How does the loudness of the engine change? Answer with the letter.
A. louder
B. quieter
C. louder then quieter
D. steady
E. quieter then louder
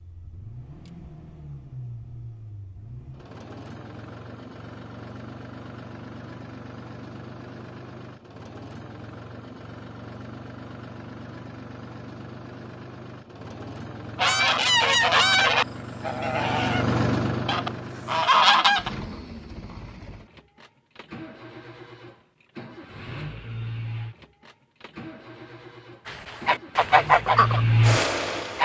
A.